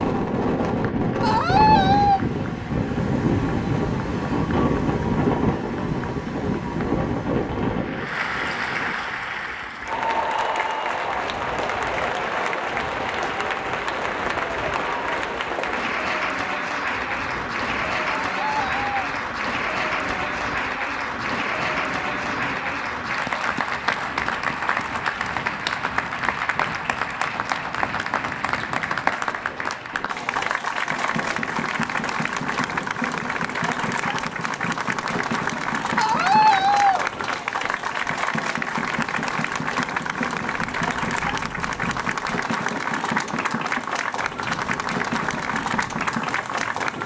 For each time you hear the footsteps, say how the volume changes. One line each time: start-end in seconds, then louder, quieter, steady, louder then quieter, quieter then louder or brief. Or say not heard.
not heard.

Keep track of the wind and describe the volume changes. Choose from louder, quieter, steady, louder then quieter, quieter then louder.
quieter.